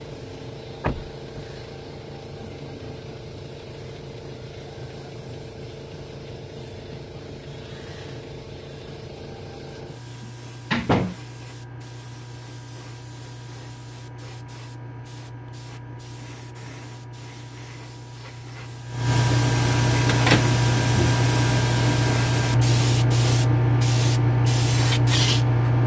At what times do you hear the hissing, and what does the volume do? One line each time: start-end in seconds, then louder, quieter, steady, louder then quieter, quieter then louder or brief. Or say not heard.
0.0-25.8 louder.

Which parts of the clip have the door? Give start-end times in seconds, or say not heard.
0.8-1.4, 10.2-11.2, 20.1-21.1.